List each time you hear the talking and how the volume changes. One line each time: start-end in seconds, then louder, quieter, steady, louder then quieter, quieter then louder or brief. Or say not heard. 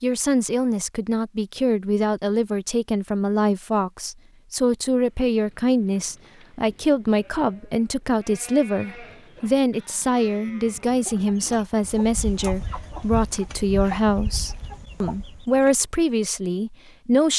0.0-17.3 steady.